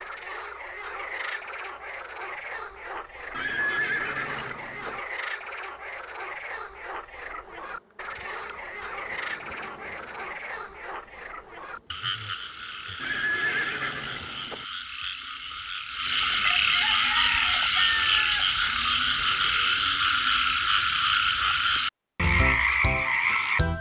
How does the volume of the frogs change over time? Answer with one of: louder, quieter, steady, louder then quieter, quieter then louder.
louder.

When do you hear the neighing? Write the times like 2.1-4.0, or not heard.
3.3-5.0, 12.9-14.7.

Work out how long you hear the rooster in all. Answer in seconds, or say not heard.
3 s.